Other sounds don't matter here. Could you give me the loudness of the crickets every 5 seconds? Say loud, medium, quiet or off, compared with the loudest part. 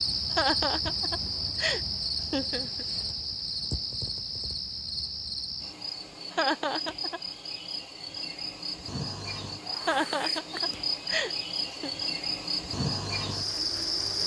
loud, medium, loud.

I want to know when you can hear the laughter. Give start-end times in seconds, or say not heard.
0.3-2.9, 6.3-7.2, 9.8-11.9.